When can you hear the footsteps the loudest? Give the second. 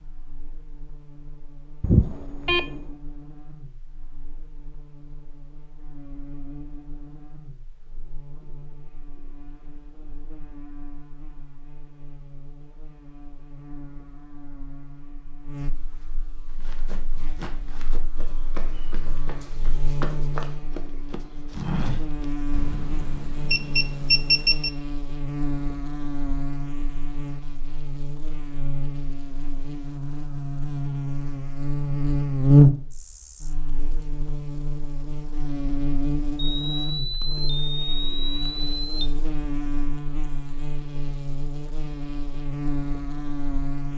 22 s.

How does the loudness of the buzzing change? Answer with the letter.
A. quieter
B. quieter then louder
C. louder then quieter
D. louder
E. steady
C.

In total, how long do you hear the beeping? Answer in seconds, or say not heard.
6 s.